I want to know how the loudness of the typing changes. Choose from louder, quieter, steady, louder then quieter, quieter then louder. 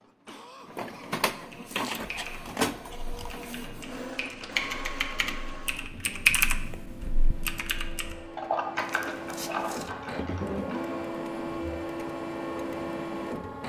louder then quieter.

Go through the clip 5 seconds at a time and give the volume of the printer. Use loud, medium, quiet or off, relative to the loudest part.
loud, medium, loud.